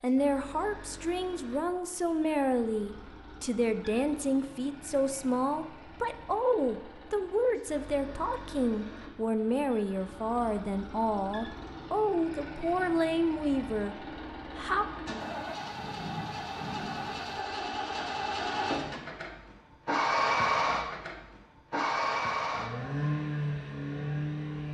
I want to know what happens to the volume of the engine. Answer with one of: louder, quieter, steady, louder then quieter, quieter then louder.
louder.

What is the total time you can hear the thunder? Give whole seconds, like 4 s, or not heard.
2 s.